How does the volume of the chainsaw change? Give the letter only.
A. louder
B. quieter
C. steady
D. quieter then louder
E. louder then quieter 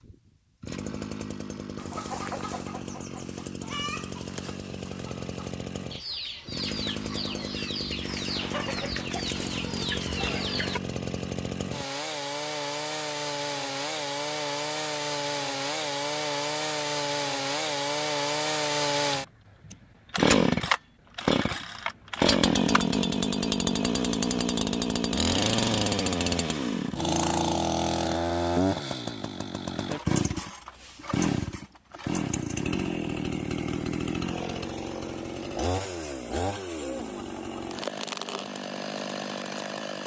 E.